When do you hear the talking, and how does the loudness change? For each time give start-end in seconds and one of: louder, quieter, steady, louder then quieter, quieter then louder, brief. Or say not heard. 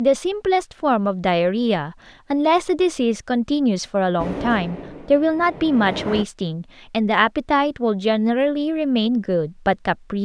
0.0-10.2 steady.